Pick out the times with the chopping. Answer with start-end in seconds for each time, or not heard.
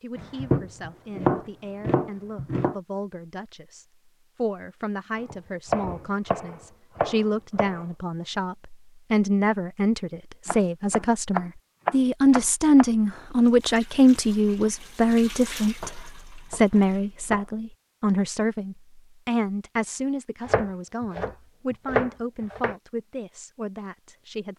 0.1-2.8, 5.2-7.8, 10.4-12.8, 15.8-17.4, 20.4-22.8.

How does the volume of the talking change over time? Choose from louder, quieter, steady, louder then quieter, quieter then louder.
louder then quieter.